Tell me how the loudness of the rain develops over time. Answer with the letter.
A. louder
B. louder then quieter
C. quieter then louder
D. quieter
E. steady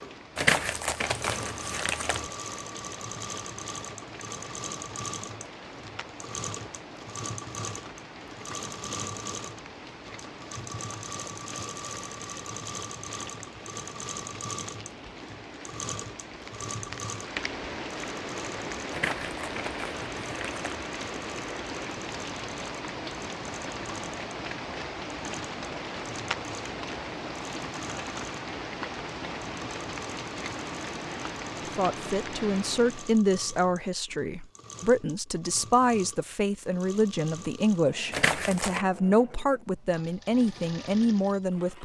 A.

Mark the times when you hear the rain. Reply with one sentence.
You can hear the rain from 0.0 to 33.2 s.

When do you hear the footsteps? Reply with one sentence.
You can't hear the footsteps here.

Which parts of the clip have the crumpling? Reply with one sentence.
The crumpling can be heard from 0.3 to 2.2 s, from 18.9 to 20.6 s and from 38.1 to 38.9 s.